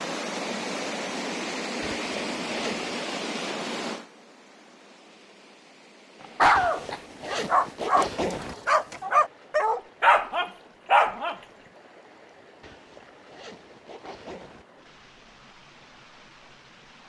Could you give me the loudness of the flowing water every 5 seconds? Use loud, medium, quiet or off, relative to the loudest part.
loud, quiet, quiet, quiet.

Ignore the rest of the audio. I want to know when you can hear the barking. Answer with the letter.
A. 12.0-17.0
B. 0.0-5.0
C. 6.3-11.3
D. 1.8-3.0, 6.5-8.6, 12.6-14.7
C.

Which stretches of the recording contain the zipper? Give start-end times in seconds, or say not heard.
1.8-3.0, 6.5-8.6, 12.6-14.7.